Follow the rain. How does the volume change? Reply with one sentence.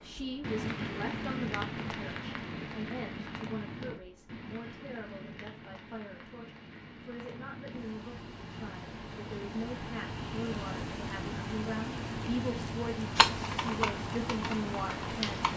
The loudness of the rain goes down, then up.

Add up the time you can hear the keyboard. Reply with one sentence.
The keyboard can be heard for 2 seconds in total.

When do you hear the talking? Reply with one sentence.
The talking can be heard from 0.0 to 15.4 s.